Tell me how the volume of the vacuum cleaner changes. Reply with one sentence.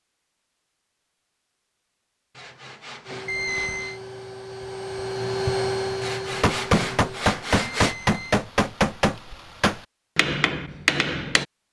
The loudness of the vacuum cleaner goes up, then down.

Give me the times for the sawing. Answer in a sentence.
You can hear the sawing from 2.4 to 4.0 s and from 6.0 to 8.0 s.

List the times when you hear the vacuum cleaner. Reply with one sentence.
The vacuum cleaner can be heard from 3.0 to 7.2 s.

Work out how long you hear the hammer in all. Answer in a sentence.
The hammer can be heard for 5 seconds in total.